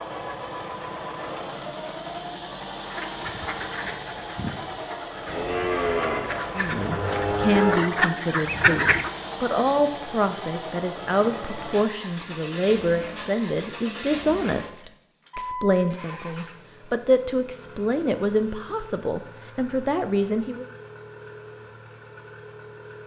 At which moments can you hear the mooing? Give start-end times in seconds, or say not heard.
5.2-7.9.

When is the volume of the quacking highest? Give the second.
9 s.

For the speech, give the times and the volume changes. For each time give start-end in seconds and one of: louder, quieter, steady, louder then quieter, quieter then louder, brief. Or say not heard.
6.5-20.6 steady.